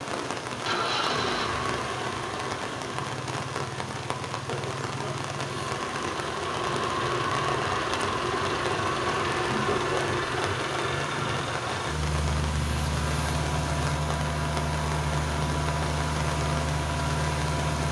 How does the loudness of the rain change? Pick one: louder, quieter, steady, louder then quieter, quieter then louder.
steady.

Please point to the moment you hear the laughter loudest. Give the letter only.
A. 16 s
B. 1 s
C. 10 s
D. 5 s
C.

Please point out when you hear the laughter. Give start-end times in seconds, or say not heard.
4.5-5.2, 9.4-10.3.